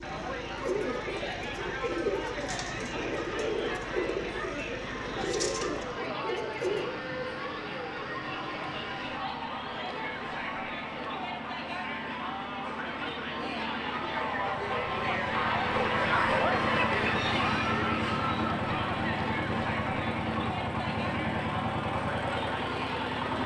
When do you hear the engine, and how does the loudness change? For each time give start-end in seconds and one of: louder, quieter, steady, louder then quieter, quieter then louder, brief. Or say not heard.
0.0-23.4 louder.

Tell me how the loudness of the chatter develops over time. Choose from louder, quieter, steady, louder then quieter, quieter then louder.
louder then quieter.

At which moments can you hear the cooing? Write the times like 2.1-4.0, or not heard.
0.6-6.8.